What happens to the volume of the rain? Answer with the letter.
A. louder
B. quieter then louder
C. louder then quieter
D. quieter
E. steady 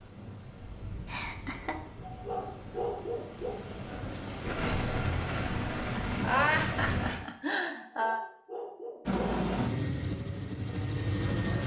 A.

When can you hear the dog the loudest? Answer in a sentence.
The loudest moment of the dog is at 3 seconds.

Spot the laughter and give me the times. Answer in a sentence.
You can hear the laughter from 1.1 to 1.8 s and from 6.2 to 8.2 s.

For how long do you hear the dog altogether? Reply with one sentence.
You can hear the dog for 3 seconds altogether.